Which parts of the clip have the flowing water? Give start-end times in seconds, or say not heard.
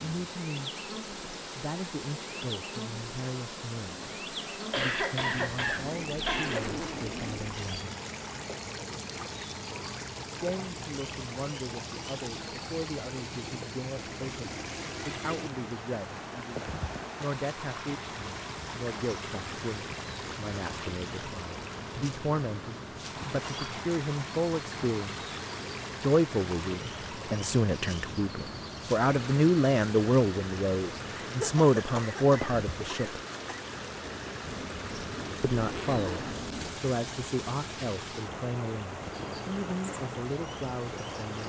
0.0-41.4.